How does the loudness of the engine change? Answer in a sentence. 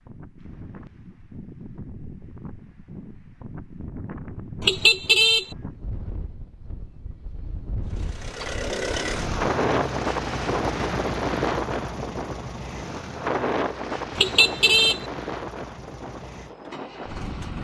The volume of the engine goes down.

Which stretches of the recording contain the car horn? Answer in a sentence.
You can hear the car horn from 4.6 to 5.5 s and from 14.2 to 15.1 s.